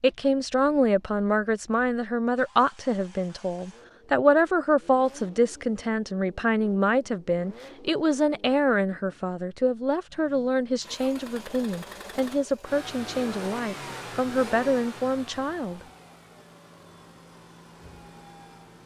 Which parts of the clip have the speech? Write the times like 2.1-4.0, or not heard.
0.0-15.8.